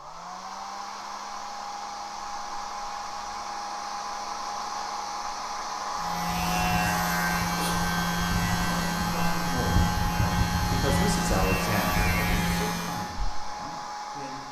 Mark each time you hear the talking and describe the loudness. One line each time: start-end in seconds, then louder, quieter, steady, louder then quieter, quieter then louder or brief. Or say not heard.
8.6-14.4 louder then quieter.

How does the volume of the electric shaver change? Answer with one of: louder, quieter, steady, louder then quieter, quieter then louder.
steady.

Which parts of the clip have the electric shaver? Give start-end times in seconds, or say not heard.
6.0-13.1.